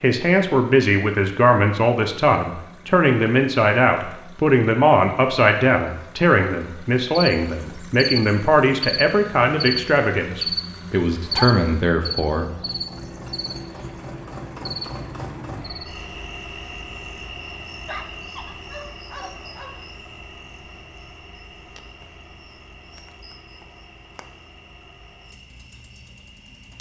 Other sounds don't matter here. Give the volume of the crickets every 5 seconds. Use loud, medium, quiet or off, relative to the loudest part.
off, loud, loud, medium, quiet, quiet.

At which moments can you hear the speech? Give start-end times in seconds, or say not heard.
0.0-12.5.